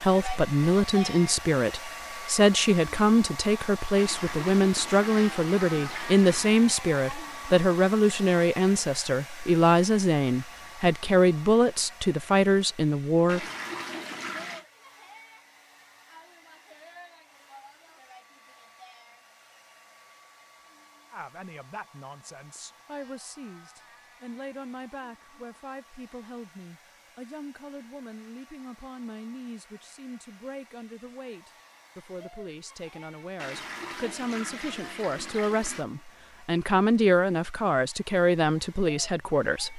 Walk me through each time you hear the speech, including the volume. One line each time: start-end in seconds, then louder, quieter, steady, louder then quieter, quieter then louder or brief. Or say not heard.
0.0-13.4 steady
21.1-39.7 louder.